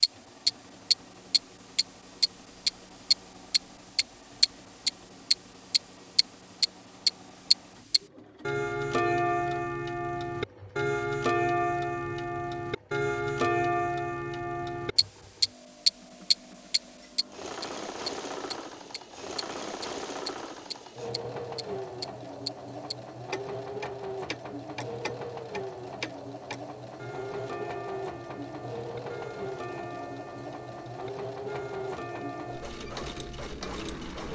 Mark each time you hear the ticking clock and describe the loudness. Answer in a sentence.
The ticking clock can be heard from 0.0 to 34.2 s, getting quieter.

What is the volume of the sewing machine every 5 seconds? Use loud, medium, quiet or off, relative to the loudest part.
quiet, quiet, quiet, loud, loud, loud, loud.